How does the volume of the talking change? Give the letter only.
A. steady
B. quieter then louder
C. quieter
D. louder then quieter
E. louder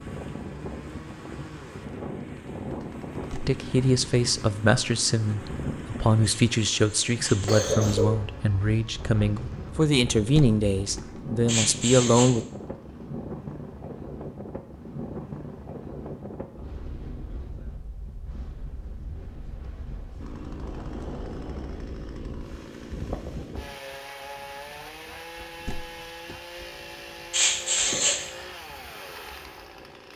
A.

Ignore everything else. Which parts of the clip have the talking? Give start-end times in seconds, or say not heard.
3.5-12.4.